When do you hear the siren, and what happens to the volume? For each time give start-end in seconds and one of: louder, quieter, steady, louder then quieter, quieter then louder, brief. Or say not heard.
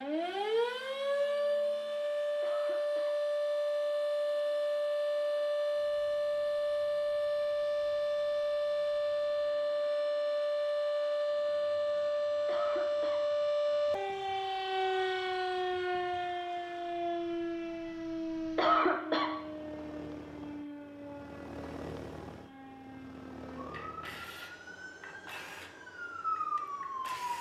0.0-27.3 quieter.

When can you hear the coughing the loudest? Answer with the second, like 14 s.
19 s.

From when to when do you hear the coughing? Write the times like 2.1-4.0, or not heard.
2.4-3.1, 12.4-13.2, 18.6-19.3.